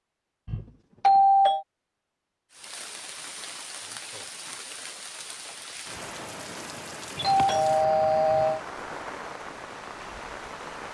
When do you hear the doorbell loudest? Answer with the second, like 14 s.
1 s.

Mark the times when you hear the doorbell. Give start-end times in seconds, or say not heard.
0.5-1.6, 7.2-8.6.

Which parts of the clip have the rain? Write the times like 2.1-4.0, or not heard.
2.5-10.9.